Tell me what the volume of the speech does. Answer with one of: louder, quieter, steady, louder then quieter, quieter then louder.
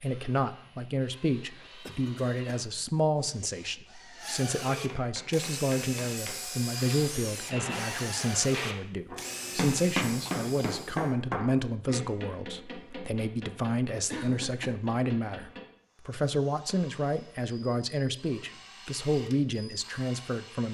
steady.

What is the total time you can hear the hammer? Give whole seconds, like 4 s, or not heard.
11 s.